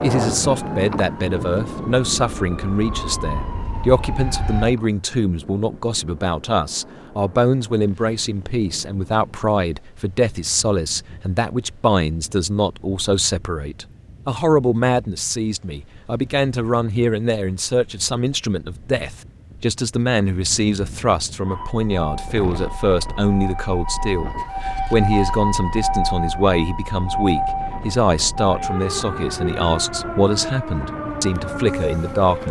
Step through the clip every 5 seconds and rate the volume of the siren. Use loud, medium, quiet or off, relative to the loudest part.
medium, off, off, off, medium, loud, loud.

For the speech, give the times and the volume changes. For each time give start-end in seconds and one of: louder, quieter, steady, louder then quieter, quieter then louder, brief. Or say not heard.
0.0-32.4 steady.